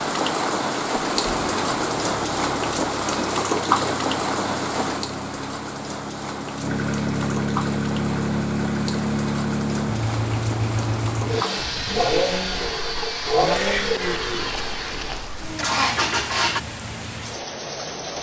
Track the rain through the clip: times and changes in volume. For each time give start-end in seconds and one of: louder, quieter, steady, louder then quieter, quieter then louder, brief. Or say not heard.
0.0-18.1 quieter.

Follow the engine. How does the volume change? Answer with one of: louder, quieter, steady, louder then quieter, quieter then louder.
louder.